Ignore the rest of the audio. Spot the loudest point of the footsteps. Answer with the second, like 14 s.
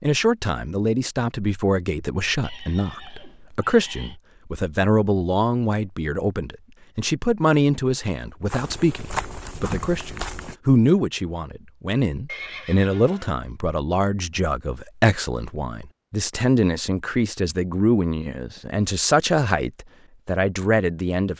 9 s.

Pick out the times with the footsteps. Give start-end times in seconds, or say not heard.
8.5-10.6.